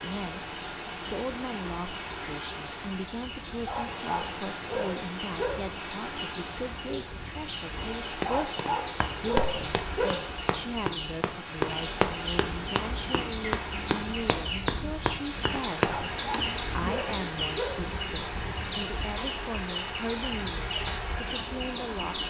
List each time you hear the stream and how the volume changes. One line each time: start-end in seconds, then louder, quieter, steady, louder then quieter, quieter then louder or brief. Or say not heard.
0.0-22.2 steady.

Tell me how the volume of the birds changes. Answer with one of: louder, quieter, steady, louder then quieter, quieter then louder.
louder.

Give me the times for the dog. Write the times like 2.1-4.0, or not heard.
3.6-5.5, 8.2-10.1, 15.8-17.7.